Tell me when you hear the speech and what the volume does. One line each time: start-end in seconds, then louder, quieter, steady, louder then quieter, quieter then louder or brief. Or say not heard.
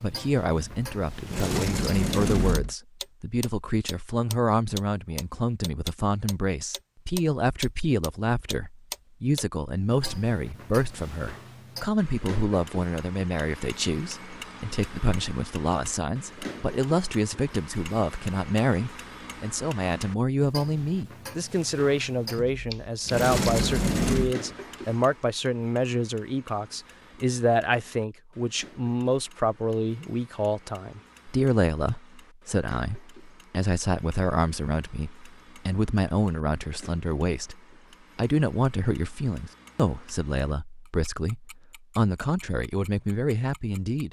0.0-44.0 steady.